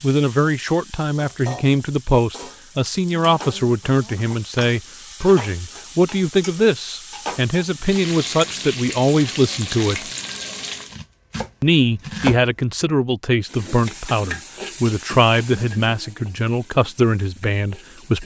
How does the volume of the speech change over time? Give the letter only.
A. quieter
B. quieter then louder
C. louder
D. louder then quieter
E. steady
E.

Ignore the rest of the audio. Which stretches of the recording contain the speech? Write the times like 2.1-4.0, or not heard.
0.0-10.1, 11.6-18.2.